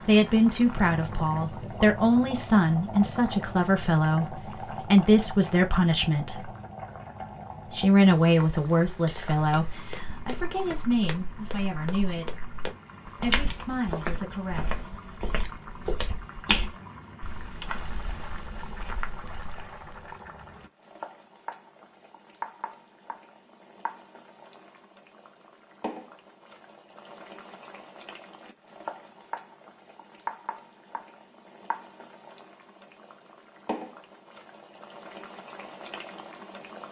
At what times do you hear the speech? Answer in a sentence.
You can hear the speech from 0.1 to 6.5 s, from 7.7 to 12.4 s and from 13.2 to 15.2 s.